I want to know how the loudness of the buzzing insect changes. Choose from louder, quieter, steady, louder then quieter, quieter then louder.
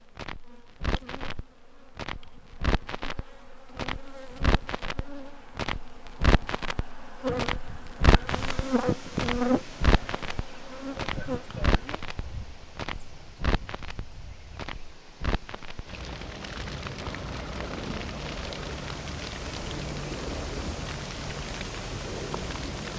louder then quieter.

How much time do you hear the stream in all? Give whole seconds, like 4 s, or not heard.
15 s.